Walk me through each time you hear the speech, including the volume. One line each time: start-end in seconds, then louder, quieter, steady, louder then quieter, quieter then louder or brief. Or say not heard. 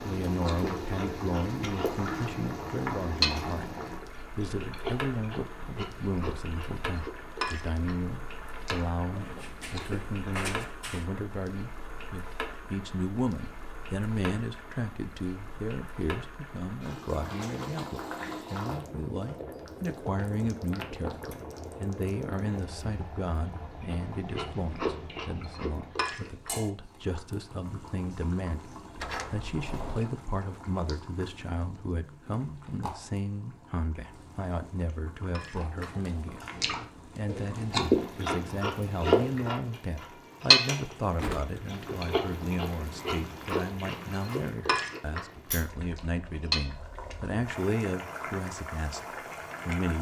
0.0-49.9 steady.